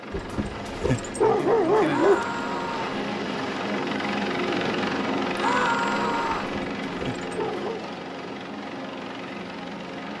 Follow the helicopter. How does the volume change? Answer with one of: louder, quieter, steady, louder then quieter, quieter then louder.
louder then quieter.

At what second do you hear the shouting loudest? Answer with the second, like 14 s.
6 s.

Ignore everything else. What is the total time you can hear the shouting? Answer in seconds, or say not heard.
2 s.